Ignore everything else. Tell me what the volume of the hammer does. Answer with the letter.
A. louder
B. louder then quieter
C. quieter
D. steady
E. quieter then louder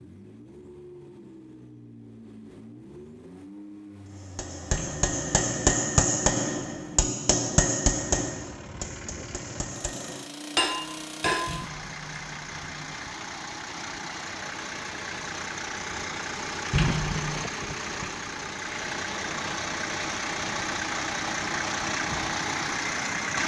E.